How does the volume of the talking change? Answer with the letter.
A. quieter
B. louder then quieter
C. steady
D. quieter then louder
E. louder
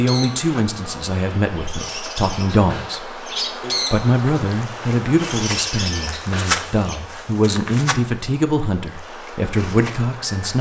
C.